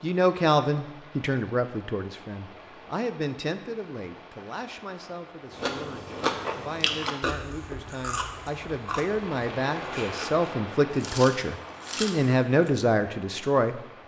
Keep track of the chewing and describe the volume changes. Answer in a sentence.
The loudness of the chewing goes down, then up.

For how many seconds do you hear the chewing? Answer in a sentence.
The chewing can be heard for 7 seconds in total.